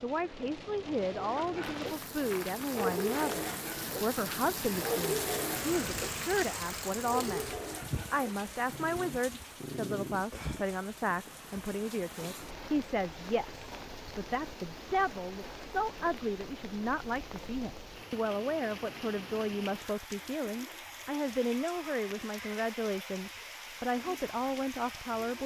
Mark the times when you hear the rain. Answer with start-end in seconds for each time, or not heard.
0.0-25.4.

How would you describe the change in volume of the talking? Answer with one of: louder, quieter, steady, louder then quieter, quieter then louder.
steady.